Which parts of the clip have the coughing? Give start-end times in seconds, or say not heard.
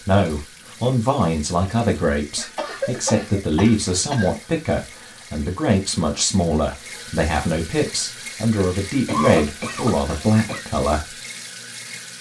2.4-4.3, 9.1-10.7.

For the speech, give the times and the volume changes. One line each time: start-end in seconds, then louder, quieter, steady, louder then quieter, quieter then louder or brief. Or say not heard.
0.0-11.2 steady.